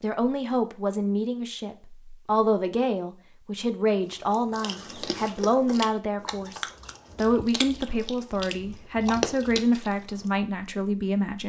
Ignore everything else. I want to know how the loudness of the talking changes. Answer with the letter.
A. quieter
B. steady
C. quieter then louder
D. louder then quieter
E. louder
B.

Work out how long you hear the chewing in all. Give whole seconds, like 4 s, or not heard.
6 s.